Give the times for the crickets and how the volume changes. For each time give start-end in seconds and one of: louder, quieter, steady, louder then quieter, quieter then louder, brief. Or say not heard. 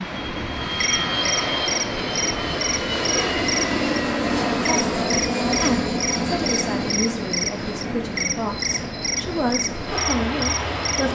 0.0-11.1 steady.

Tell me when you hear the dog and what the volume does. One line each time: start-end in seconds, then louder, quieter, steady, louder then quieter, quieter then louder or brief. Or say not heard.
not heard.